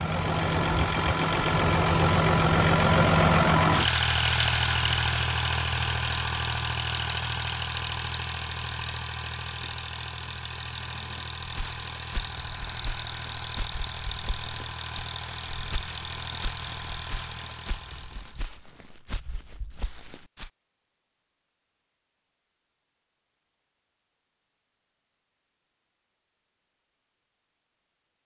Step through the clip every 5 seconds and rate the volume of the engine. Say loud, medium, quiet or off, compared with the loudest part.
loud, medium, quiet, quiet, off, off.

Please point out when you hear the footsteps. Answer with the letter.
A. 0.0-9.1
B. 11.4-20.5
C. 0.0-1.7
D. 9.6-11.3
B.